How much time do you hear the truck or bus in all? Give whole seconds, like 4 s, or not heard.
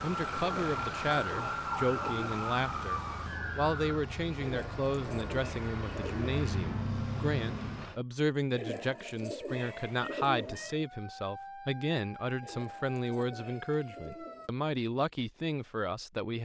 8 s.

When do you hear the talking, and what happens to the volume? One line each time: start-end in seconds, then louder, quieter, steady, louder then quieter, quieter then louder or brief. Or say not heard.
0.0-16.4 steady.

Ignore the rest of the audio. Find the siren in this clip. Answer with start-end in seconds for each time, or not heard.
0.0-4.0, 9.4-14.5.